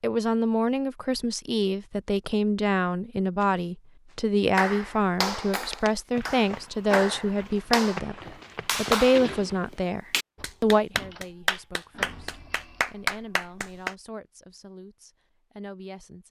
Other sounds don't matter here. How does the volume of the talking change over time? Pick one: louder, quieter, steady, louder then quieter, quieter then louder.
quieter.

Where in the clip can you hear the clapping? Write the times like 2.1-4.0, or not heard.
4.5-13.9.